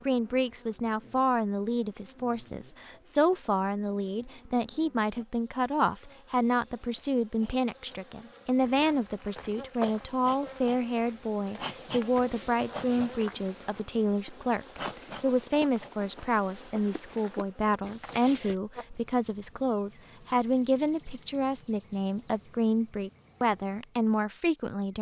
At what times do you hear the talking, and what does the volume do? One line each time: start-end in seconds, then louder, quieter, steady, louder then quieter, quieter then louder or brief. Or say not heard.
0.1-24.9 steady.